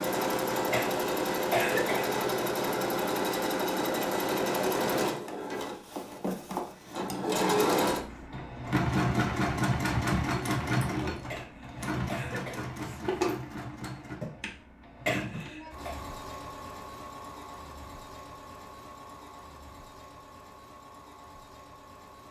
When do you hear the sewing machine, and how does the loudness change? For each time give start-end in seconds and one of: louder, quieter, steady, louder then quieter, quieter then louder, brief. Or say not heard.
0.0-22.2 quieter.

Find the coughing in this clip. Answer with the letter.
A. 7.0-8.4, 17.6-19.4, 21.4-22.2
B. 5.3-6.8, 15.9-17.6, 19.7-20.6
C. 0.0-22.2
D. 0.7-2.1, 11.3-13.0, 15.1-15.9
D.